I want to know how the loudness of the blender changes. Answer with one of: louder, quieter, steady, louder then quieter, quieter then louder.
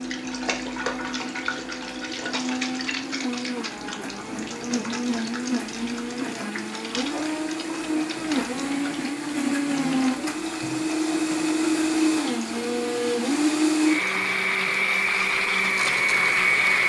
louder.